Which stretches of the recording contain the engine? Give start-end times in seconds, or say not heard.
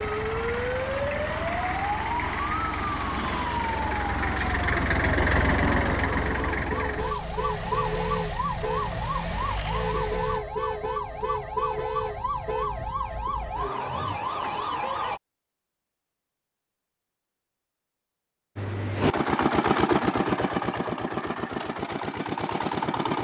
0.0-10.4, 18.6-23.2.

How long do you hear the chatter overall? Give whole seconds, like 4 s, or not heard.
not heard.